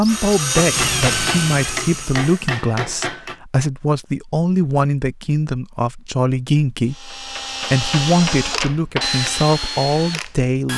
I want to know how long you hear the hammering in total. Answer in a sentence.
You can hear the hammering for 5 seconds altogether.